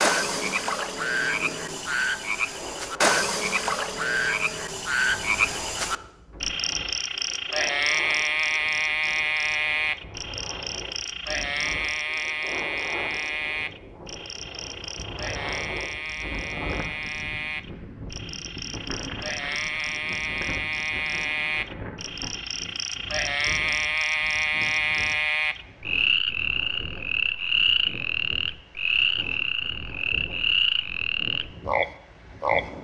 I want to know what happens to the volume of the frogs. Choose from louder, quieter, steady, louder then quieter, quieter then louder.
quieter then louder.